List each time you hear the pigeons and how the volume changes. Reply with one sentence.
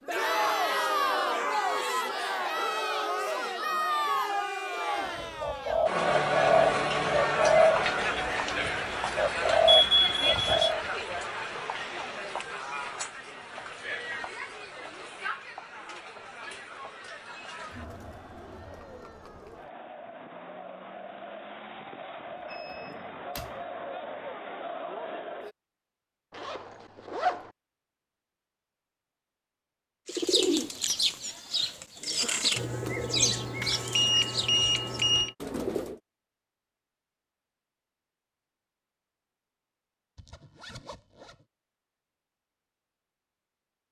The pigeons can be heard from 5.4 to 10.8 s, getting quieter then louder; and from 30.1 to 36.0 s, getting quieter.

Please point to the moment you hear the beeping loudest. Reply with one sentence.
The volume of the beeping peaks at 10 seconds.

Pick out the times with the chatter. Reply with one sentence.
The chatter can be heard from 0.0 to 25.6 s.